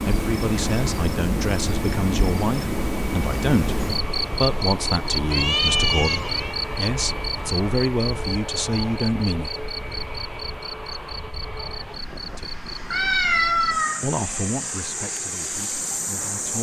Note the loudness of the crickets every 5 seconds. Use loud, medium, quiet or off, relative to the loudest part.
loud, loud, medium, loud.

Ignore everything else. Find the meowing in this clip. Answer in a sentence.
You can hear the meowing from 5.3 to 6.5 s and from 12.9 to 14.1 s.